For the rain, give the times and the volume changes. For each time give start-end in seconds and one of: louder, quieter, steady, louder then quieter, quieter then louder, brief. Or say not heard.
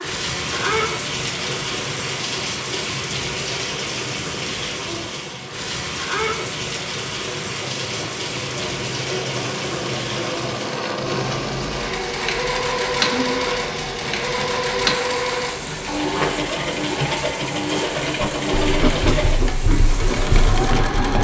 0.0-21.2 quieter.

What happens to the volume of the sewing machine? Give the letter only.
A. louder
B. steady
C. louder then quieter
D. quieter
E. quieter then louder
A.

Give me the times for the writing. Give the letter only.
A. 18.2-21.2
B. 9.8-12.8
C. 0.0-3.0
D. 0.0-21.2
A.